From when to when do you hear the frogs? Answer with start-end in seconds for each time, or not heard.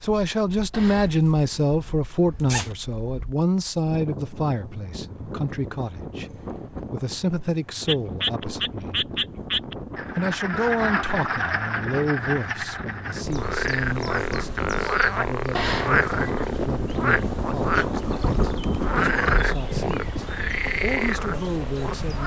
7.8-22.2.